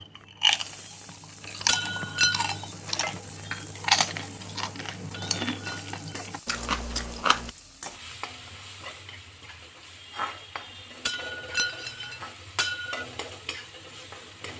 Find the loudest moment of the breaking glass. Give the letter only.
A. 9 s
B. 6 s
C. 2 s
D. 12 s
C.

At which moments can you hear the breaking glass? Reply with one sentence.
The breaking glass can be heard from 1.6 to 2.6 s, from 5.1 to 6.3 s and from 11.1 to 13.1 s.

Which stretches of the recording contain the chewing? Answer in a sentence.
You can hear the chewing from 0.0 to 7.5 s.